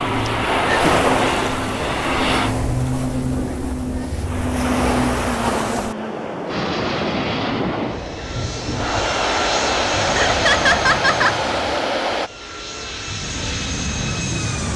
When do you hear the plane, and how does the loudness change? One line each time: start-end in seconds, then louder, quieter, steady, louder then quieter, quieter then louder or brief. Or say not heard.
0.0-2.5 brief
6.5-14.7 quieter then louder.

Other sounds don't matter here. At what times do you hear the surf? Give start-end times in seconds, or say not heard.
0.0-12.3.